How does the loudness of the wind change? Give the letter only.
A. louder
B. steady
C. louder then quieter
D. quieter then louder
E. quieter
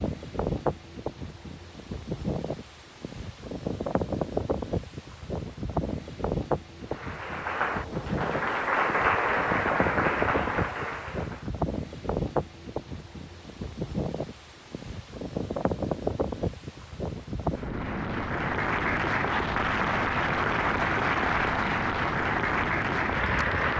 B.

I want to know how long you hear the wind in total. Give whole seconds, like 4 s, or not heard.
24 s.